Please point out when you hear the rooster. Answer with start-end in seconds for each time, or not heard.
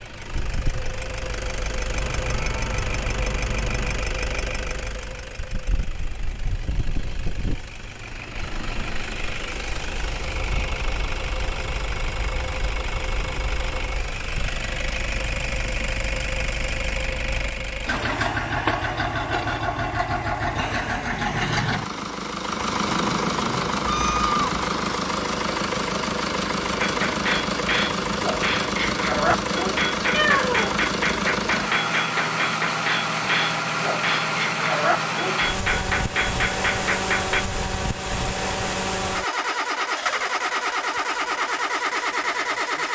not heard.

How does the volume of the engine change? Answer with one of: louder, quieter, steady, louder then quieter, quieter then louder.
louder.